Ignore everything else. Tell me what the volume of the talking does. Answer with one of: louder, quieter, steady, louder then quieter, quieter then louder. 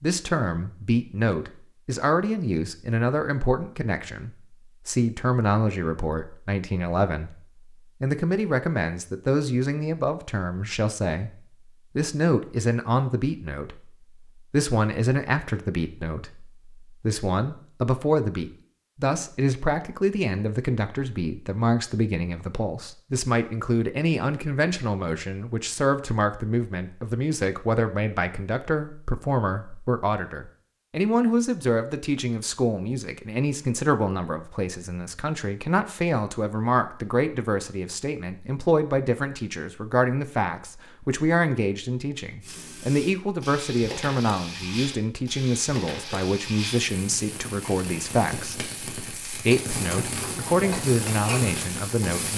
steady.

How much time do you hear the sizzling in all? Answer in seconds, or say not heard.
10 s.